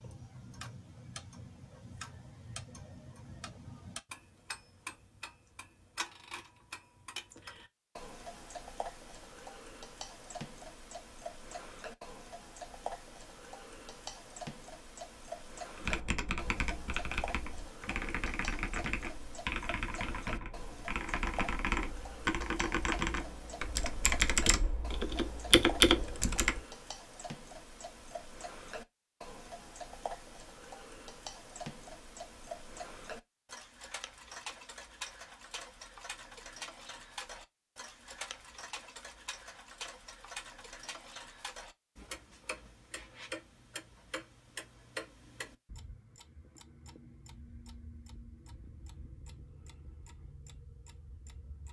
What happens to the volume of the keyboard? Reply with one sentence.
The loudness of the keyboard goes up.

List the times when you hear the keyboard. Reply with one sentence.
The keyboard can be heard from 15.8 to 26.6 s.